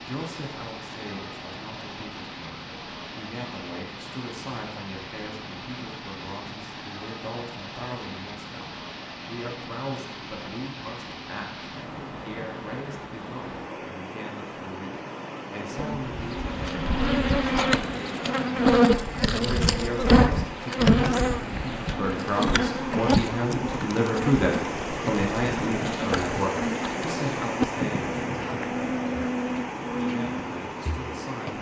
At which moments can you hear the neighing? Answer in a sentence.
You can't hear the neighing here.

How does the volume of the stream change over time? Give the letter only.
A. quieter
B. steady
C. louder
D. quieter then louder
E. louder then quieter
C.